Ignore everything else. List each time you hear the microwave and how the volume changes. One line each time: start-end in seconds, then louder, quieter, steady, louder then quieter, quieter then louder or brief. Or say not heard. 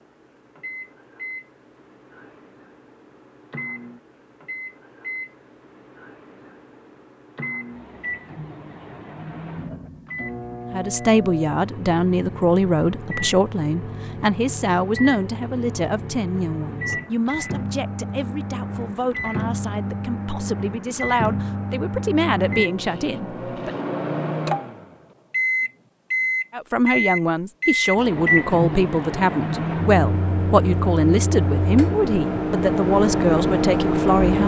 0.0-34.4 louder.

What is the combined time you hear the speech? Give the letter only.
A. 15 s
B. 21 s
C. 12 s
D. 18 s
B.